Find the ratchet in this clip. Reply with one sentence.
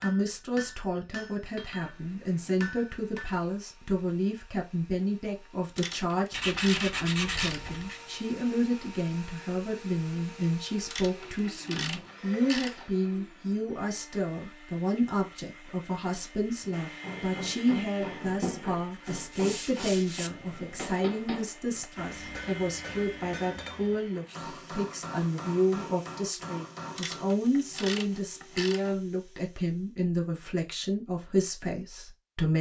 The ratchet can be heard from 5.8 to 7.8 s, from 10.8 to 12.9 s and from 26.9 to 28.9 s.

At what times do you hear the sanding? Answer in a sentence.
The sanding can be heard from 6.3 to 8.0 s and from 18.4 to 20.3 s.